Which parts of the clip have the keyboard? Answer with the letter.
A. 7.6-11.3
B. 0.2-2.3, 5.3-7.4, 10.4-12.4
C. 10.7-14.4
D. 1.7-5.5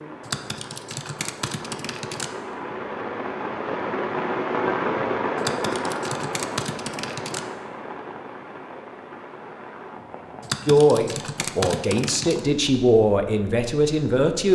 B.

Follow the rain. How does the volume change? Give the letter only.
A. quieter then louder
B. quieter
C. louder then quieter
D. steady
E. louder
C.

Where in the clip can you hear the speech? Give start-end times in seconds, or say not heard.
10.7-14.4.